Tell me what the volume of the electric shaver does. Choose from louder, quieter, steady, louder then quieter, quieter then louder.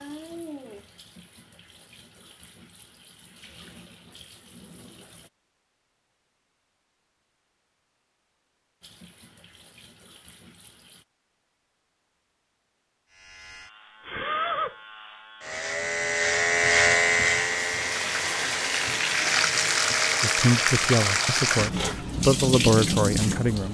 louder then quieter.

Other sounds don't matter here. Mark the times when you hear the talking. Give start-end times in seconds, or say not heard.
20.2-23.6.